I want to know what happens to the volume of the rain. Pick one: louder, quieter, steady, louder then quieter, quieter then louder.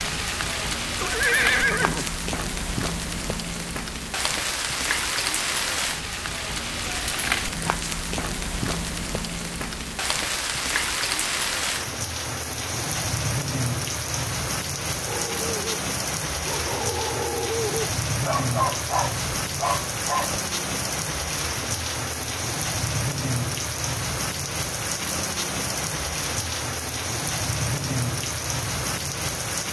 steady.